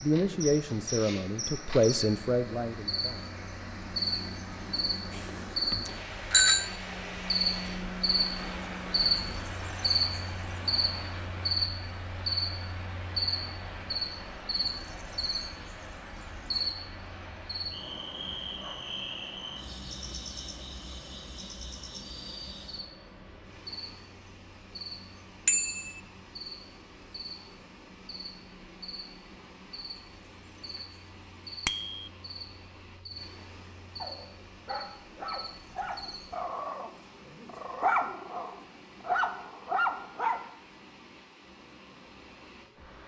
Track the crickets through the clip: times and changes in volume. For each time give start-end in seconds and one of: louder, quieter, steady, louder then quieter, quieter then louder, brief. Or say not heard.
0.0-36.5 quieter.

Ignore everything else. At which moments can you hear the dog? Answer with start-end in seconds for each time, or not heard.
34.0-40.4.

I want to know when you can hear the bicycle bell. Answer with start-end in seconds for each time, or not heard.
5.1-6.7, 25.4-26.0, 31.6-32.1.